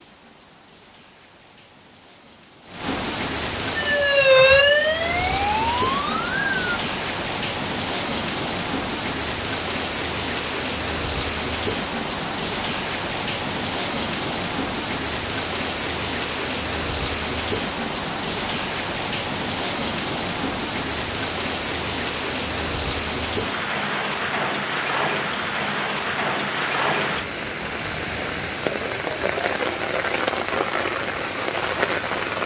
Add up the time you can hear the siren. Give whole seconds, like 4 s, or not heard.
3 s.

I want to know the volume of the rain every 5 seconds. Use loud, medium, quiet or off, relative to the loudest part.
medium, loud, loud, loud, loud, loud, loud.